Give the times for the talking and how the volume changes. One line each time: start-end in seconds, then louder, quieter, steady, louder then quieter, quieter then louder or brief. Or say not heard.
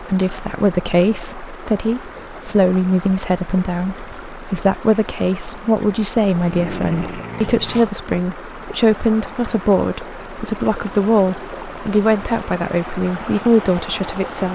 0.0-14.5 steady.